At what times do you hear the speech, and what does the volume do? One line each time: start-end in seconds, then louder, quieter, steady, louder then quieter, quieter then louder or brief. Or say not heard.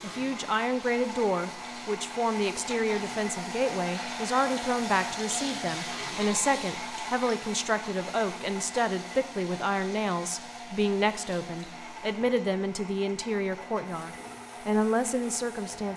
0.0-15.9 steady.